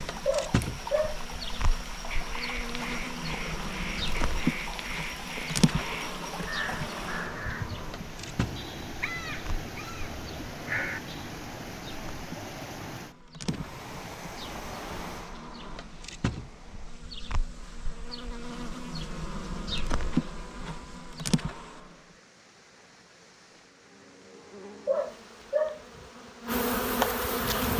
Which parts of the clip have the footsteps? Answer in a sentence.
You can't hear the footsteps here.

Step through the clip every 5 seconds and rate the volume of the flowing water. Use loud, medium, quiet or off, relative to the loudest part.
loud, loud, loud, medium, quiet, quiet.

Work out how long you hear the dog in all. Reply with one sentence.
The dog can be heard for 2 seconds in total.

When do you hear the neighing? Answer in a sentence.
You can't hear the neighing here.